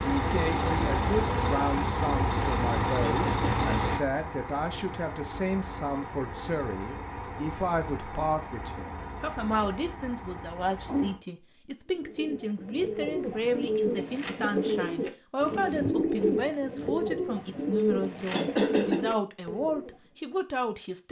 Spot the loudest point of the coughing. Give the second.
19 s.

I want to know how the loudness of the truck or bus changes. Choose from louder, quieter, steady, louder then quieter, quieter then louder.
quieter.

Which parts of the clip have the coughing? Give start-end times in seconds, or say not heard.
3.0-3.8, 18.3-19.1.